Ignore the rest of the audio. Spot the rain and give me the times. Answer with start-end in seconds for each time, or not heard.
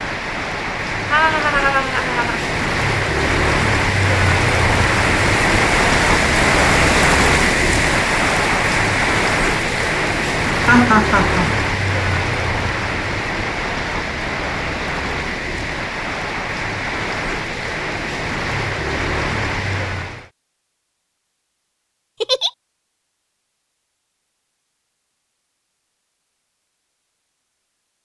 0.0-20.3.